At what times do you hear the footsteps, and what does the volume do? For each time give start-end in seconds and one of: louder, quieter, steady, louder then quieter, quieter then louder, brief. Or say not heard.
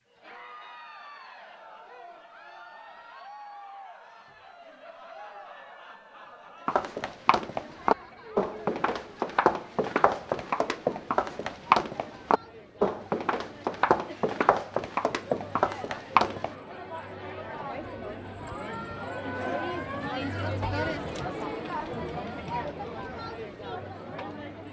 6.7-16.6 steady.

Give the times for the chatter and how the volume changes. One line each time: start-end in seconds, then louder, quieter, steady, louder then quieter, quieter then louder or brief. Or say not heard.
0.1-24.6 louder.